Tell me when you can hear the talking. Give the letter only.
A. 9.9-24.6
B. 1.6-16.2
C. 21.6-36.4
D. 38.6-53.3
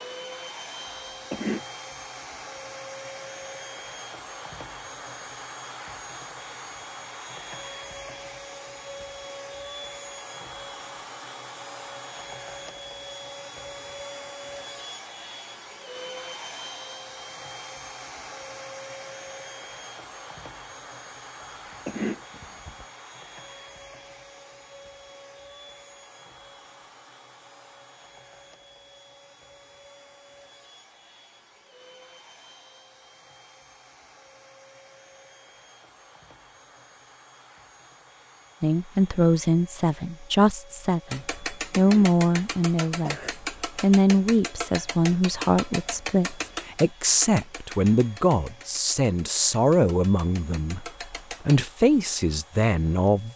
D.